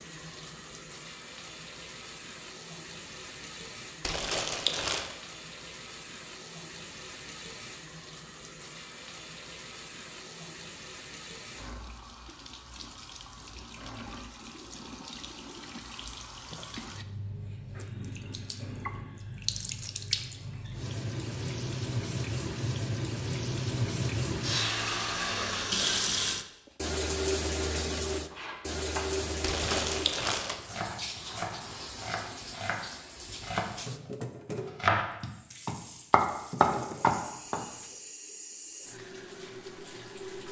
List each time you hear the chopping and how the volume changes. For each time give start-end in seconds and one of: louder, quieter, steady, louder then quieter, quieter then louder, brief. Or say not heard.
28.3-37.6 louder.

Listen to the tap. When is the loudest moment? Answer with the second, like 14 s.
26 s.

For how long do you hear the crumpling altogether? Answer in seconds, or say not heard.
2 s.